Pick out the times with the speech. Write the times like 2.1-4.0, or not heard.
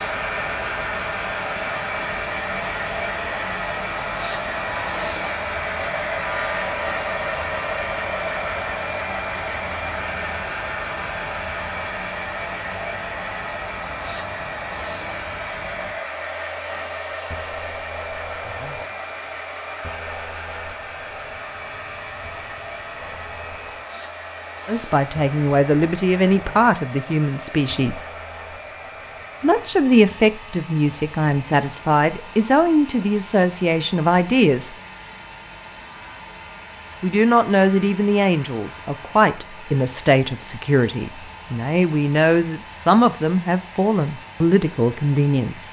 24.6-28.1, 29.4-34.7, 37.0-45.6.